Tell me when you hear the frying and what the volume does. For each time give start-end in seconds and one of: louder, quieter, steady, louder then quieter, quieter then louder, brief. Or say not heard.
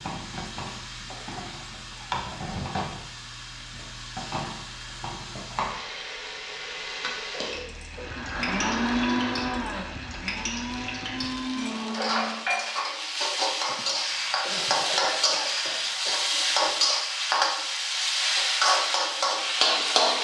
0.0-20.1 louder.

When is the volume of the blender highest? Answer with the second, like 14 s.
9 s.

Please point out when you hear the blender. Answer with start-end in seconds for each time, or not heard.
7.9-12.5.